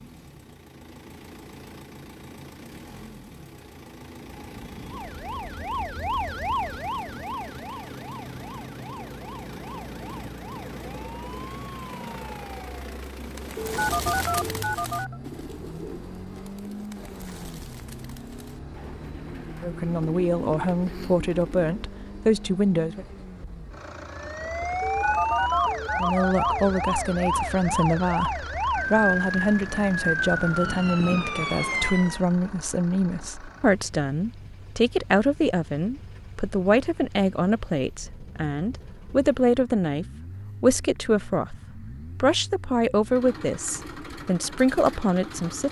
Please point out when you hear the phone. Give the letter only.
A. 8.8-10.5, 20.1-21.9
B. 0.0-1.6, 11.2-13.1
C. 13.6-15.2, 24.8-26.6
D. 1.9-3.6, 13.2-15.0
C.